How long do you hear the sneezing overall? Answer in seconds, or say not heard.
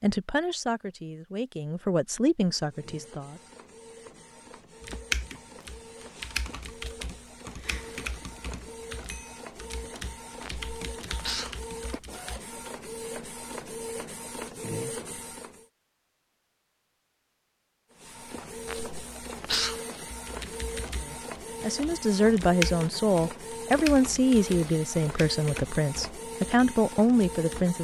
2 s.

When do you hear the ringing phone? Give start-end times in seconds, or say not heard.
not heard.